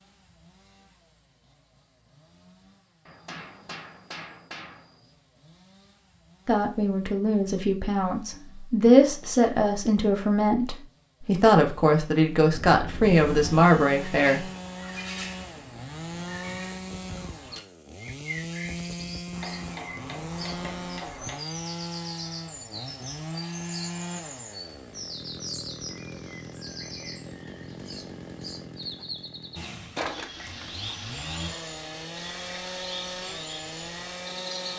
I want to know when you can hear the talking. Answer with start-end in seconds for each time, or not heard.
6.5-14.4.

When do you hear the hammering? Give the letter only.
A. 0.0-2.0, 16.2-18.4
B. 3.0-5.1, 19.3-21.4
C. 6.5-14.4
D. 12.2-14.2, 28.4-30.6
B.